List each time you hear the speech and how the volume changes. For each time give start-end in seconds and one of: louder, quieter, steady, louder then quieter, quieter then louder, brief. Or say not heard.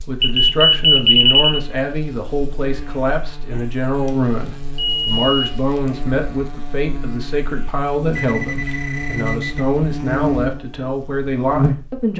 0.1-12.1 steady.